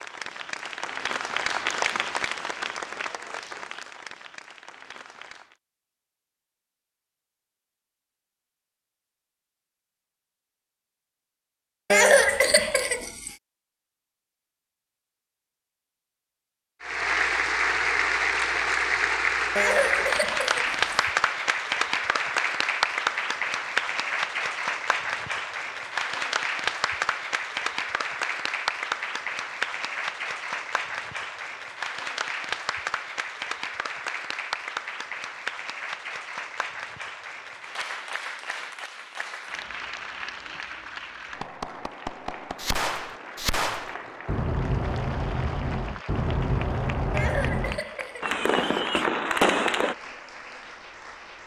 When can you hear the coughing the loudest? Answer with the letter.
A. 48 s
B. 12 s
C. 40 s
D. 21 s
B.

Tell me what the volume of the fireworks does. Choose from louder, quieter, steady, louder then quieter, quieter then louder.
louder.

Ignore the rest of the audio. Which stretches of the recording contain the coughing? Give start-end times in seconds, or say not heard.
11.9-13.3, 19.6-21.1, 47.1-49.1.